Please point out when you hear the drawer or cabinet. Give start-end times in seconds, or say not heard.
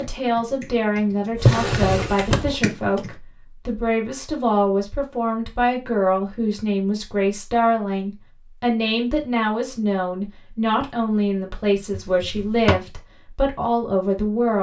1.4-2.6, 11.9-12.8.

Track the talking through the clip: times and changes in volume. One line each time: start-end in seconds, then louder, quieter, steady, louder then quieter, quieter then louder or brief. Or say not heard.
0.0-14.5 steady.